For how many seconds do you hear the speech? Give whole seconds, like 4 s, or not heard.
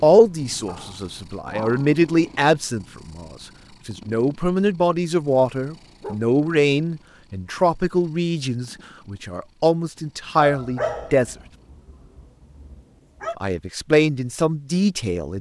13 s.